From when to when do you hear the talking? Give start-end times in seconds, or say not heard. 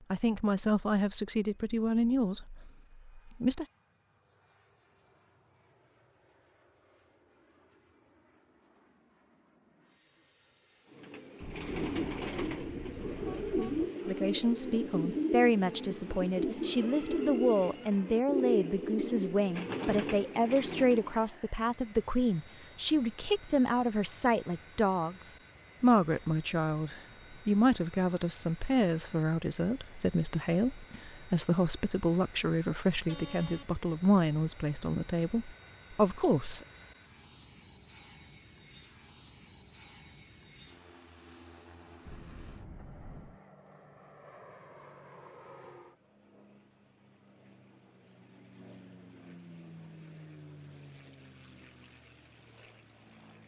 0.1-3.6, 14.1-36.6.